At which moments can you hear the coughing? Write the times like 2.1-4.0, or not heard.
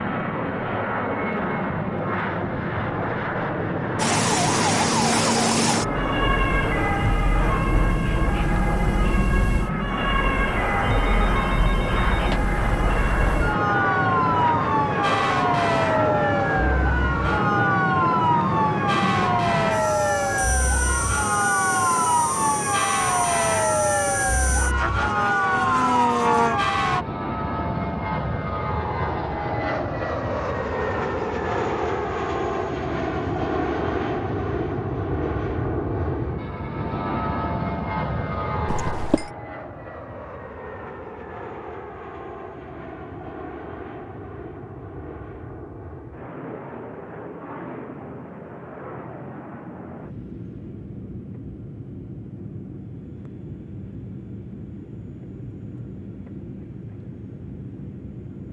38.6-39.3.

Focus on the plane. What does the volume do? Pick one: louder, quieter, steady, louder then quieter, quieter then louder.
quieter.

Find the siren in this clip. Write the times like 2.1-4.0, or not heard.
4.0-27.1.